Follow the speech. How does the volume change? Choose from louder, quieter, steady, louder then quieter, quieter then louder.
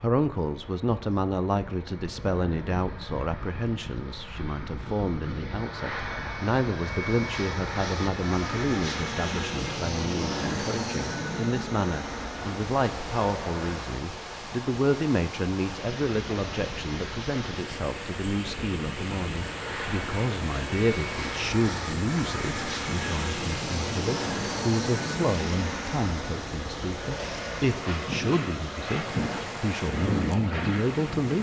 steady.